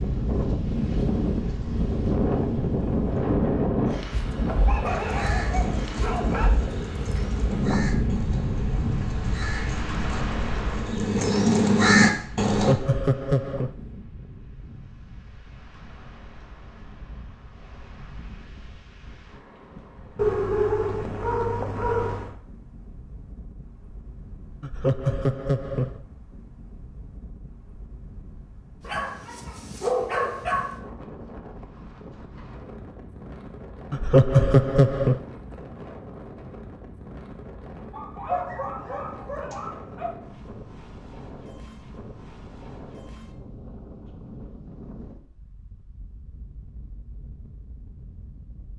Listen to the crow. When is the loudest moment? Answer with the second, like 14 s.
12 s.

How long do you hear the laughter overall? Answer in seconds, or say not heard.
4 s.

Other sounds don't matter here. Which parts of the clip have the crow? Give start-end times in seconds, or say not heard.
4.8-12.8.